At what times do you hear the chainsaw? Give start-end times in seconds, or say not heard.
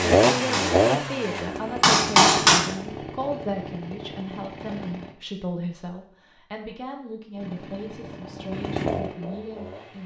0.0-5.2, 7.3-10.0.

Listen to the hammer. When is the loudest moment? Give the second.
2 s.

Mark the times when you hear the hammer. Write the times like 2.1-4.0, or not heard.
0.0-2.6.